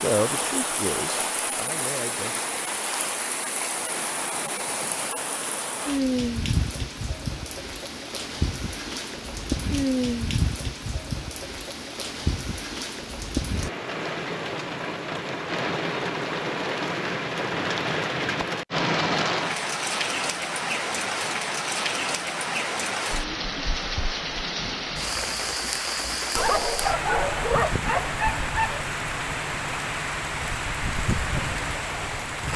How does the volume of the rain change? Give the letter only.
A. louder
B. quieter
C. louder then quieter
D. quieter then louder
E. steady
E.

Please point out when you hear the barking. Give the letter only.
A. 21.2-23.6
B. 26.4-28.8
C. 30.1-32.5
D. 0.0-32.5
B.